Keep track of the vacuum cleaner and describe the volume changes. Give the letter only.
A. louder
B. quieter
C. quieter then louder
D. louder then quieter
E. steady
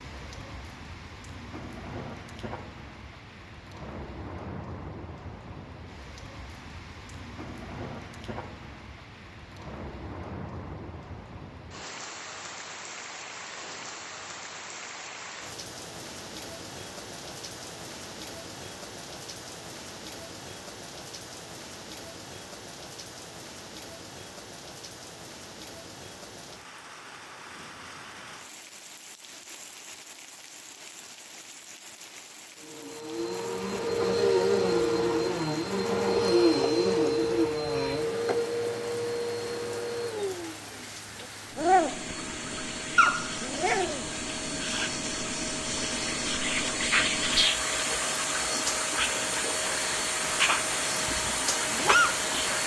C.